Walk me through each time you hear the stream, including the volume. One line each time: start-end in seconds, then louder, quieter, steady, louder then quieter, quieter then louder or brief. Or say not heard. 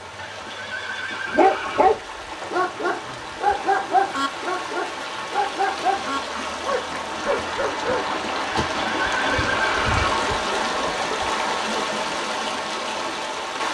0.0-13.6 louder.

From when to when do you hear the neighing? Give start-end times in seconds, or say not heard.
0.1-2.0, 8.4-10.3.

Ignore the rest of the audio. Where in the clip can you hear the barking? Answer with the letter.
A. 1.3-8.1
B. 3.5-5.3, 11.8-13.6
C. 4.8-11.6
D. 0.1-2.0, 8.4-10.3
A.